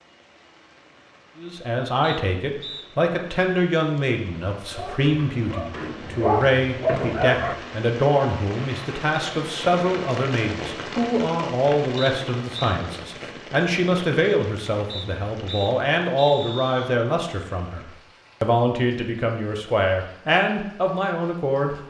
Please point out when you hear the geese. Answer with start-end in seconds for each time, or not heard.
not heard.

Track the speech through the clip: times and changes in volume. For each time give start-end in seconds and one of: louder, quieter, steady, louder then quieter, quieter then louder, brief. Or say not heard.
1.4-21.8 steady.